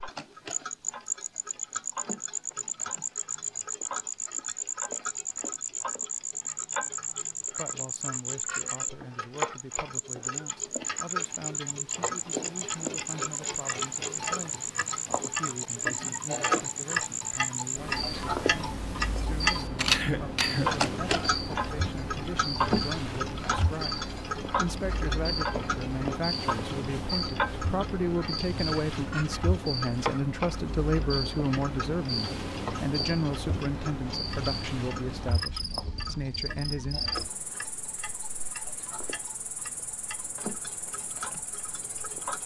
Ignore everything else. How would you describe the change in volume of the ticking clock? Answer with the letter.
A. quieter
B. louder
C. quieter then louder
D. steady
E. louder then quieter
E.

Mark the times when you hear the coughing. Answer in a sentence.
You can hear the coughing from 19.9 to 20.9 s.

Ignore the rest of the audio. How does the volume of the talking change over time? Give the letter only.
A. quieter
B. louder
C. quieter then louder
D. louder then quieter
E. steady
B.